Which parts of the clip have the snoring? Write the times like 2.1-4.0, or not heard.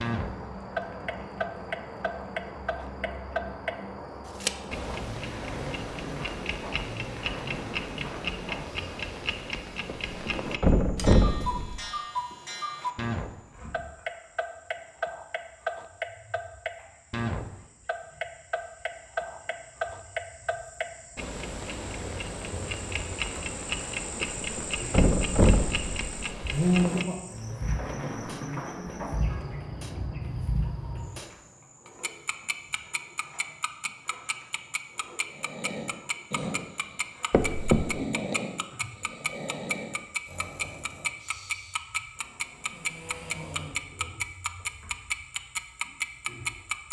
35.3-44.0.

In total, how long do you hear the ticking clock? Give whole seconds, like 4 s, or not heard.
47 s.